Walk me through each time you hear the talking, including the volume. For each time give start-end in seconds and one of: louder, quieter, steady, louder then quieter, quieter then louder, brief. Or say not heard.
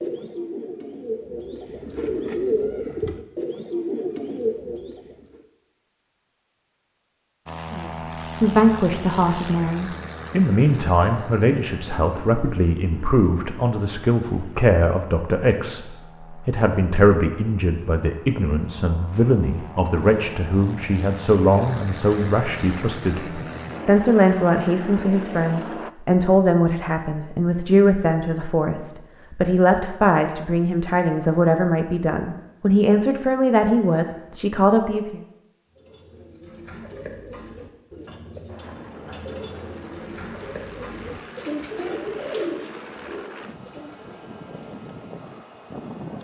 7.7-35.2 steady.